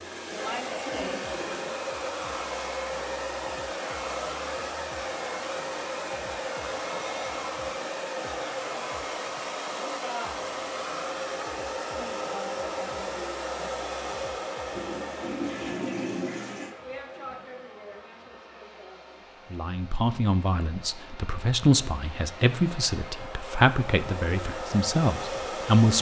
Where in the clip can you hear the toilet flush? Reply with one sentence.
You can hear the toilet flush from 0.8 to 1.8 s and from 14.7 to 16.7 s.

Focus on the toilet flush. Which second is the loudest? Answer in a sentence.
The loudest moment of the toilet flush is at 16 seconds.